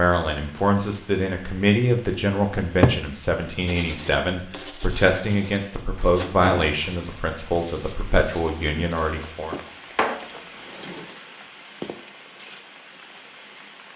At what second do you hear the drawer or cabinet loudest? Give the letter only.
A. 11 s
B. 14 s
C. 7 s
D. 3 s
D.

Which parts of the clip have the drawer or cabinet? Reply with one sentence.
You can hear the drawer or cabinet from 2.5 to 3.0 s, from 6.0 to 6.8 s and from 9.5 to 11.1 s.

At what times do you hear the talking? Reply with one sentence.
The talking can be heard from 0.0 to 9.6 s.